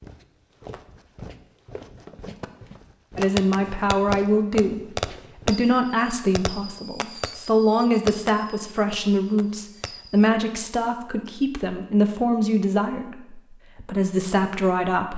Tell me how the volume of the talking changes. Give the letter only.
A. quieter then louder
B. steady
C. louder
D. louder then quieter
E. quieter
B.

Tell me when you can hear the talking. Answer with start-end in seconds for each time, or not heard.
3.1-15.1.